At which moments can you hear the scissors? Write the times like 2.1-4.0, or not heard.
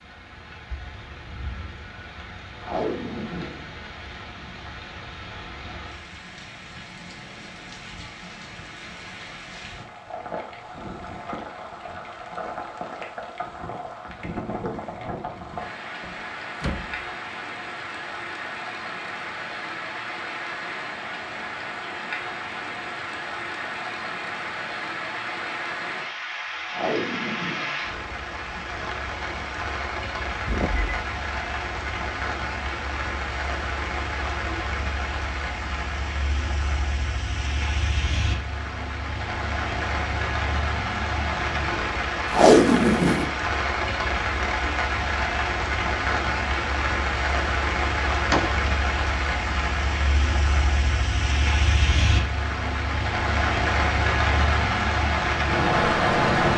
not heard.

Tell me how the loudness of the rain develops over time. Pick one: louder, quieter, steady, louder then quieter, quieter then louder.
louder.